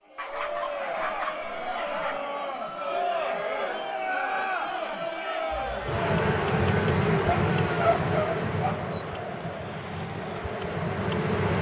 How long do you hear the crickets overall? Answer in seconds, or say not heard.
6 s.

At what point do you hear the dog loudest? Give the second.
8 s.